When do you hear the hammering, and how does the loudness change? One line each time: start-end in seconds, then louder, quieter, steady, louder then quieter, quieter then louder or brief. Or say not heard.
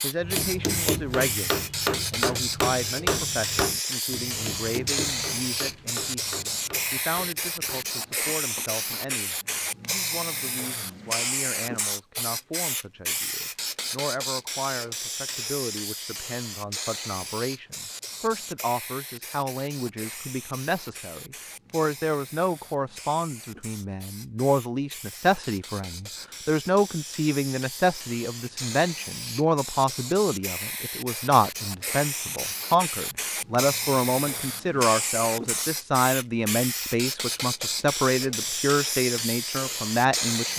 0.2-8.7 quieter.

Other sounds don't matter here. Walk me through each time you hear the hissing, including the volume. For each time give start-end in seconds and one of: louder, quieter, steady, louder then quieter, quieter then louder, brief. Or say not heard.
0.0-40.5 quieter then louder.